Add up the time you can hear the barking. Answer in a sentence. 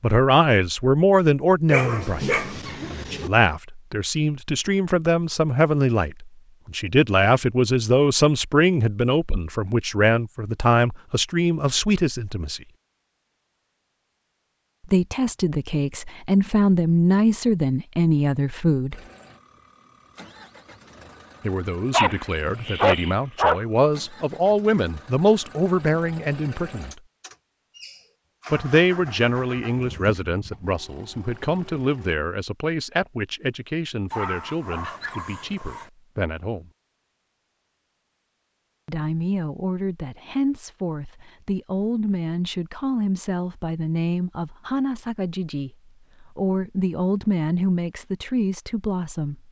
You can hear the barking for 5 seconds altogether.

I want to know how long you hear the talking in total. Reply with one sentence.
The talking can be heard for 41 seconds in total.